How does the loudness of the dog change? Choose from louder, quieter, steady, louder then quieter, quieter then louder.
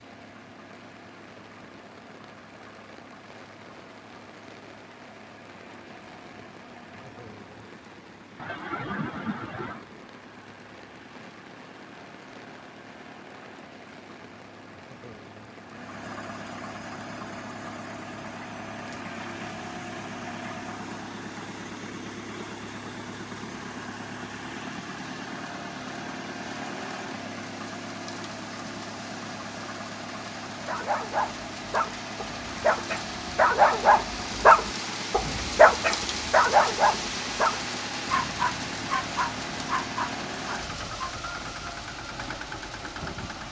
louder then quieter.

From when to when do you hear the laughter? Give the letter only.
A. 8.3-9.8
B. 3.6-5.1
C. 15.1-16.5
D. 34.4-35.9
A.